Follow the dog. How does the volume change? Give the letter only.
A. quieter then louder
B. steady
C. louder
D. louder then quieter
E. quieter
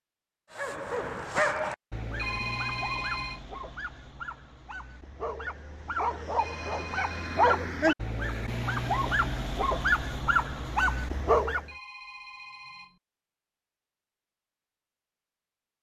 A.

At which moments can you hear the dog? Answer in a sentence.
You can hear the dog from 0.6 to 11.7 s.